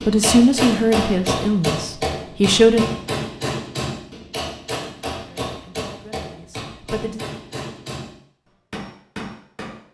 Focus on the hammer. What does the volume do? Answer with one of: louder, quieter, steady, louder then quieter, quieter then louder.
quieter.